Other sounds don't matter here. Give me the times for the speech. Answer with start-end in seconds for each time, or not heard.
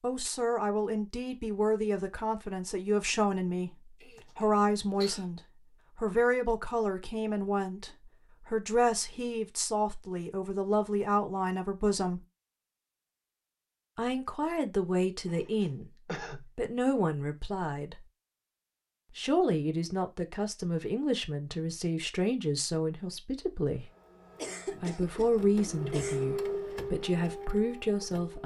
0.0-12.2, 13.9-18.1, 19.1-23.9, 24.8-28.4.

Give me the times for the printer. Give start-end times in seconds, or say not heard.
23.8-28.4.